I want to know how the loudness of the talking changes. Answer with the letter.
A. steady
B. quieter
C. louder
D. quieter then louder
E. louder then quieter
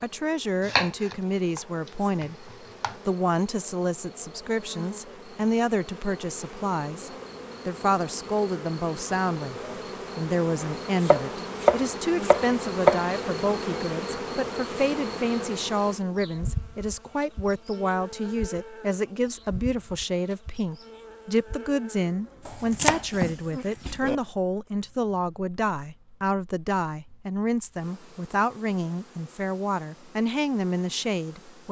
A.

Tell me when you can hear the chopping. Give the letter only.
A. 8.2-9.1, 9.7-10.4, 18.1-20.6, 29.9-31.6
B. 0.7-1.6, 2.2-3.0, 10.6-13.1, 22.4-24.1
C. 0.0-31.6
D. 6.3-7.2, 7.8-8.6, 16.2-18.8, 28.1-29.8
B.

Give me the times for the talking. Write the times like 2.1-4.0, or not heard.
0.0-31.6.